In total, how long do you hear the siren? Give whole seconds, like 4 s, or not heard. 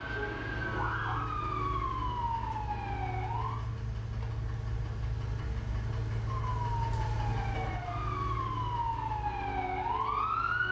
8 s.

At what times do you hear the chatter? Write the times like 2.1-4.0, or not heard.
not heard.